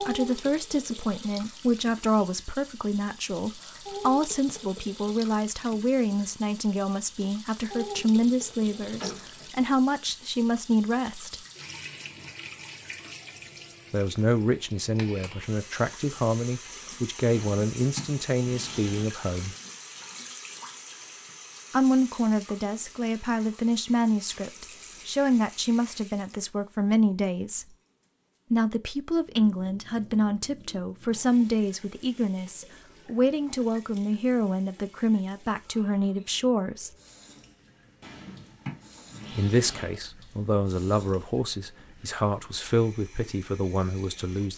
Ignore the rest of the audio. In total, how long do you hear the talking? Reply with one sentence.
You can hear the talking for 37 seconds altogether.